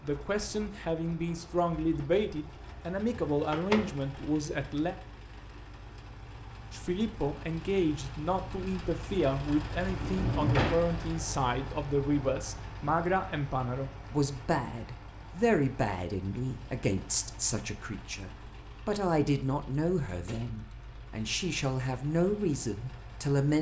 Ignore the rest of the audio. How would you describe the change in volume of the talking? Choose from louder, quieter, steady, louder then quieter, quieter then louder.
steady.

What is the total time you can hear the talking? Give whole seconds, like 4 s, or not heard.
22 s.